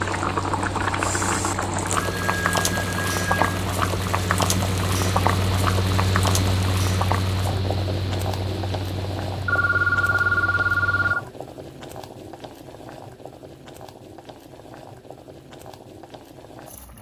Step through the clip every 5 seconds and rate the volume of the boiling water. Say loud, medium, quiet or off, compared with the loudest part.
loud, loud, quiet, quiet.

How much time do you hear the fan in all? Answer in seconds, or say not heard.
11 s.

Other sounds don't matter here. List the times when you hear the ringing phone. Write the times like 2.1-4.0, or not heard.
2.0-3.6, 9.4-11.2.